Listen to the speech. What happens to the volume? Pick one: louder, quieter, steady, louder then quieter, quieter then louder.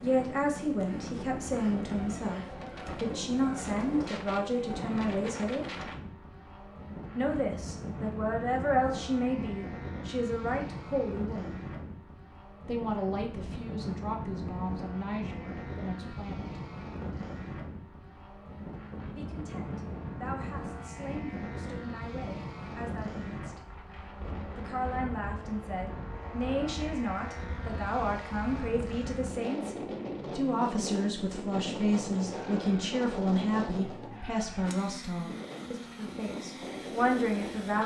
quieter then louder.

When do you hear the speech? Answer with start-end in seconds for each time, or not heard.
0.0-5.7, 7.2-11.6, 12.7-16.6, 19.1-23.6, 24.6-37.8.